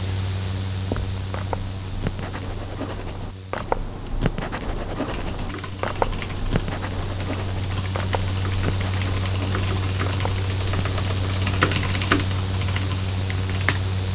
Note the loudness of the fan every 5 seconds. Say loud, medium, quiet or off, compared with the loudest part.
medium, loud, loud.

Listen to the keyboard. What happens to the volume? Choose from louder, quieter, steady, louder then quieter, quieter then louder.
louder.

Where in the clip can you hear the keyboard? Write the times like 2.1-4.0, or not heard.
5.1-13.9.